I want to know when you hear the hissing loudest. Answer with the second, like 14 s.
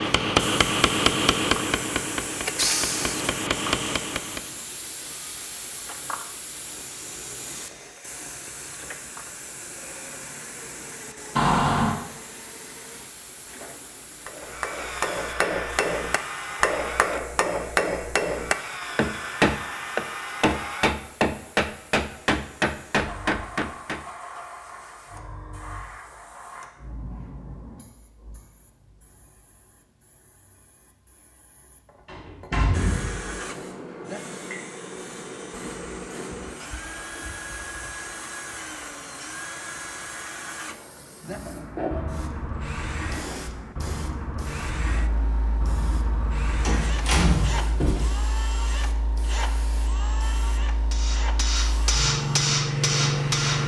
53 s.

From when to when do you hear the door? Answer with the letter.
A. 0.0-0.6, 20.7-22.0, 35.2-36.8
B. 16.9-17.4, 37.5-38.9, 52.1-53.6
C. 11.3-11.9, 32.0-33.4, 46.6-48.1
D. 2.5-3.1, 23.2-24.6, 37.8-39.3
C.